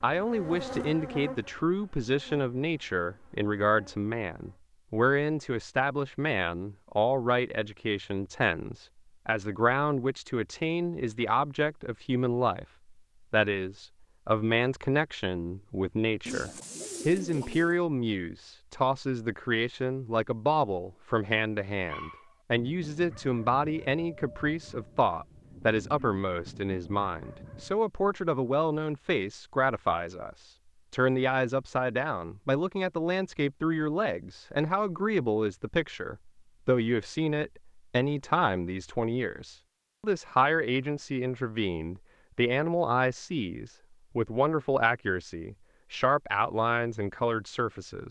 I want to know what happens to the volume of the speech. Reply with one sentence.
The loudness of the speech stays about the same.